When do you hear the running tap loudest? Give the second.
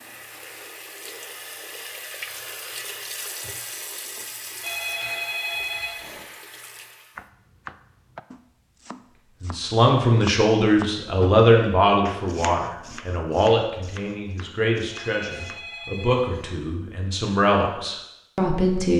3 s.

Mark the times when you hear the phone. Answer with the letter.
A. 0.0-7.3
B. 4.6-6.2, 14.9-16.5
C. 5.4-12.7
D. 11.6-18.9
B.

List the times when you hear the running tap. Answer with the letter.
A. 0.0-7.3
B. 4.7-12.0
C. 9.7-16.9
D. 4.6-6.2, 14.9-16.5
A.